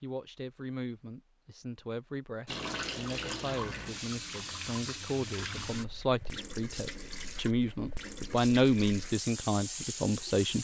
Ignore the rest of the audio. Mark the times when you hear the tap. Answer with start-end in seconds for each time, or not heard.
2.5-10.5.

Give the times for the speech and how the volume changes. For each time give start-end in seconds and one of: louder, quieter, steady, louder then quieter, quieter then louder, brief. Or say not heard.
0.0-10.5 louder.